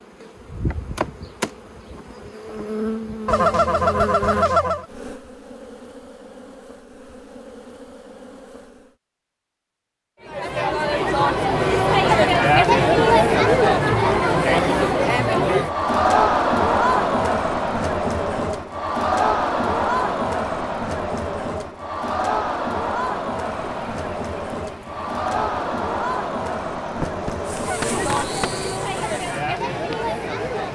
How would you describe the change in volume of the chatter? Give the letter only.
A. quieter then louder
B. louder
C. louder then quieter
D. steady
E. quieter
E.